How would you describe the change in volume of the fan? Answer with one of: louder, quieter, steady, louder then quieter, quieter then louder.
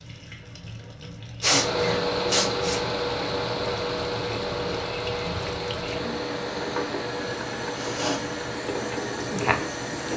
quieter.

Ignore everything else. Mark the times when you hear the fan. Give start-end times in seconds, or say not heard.
1.4-10.1.